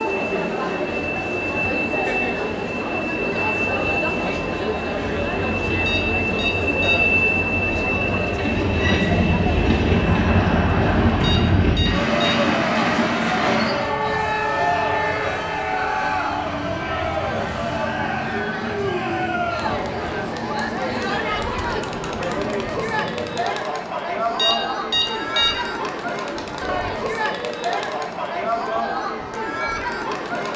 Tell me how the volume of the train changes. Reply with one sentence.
The loudness of the train goes up, then down.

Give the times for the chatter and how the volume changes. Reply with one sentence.
You can hear the chatter from 0.0 to 30.5 s, at a steady volume.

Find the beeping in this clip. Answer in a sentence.
The beeping can be heard from 5.8 to 7.2 s, from 11.2 to 12.4 s and from 24.4 to 25.8 s.